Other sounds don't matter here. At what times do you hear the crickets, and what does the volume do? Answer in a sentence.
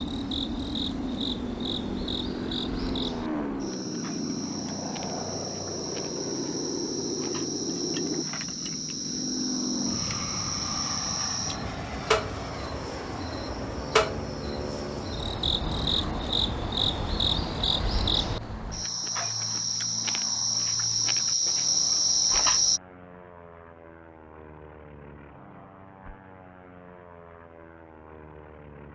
The crickets can be heard from 0.0 to 22.8 s, getting louder.